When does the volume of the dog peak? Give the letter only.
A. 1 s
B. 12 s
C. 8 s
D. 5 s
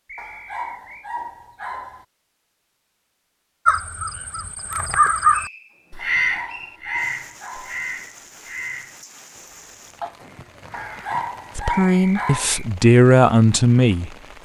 B.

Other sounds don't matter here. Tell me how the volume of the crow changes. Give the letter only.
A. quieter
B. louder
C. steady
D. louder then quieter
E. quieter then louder
A.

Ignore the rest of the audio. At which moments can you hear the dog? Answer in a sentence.
The dog can be heard from 0.1 to 2.0 s, from 6.0 to 7.8 s and from 10.7 to 12.5 s.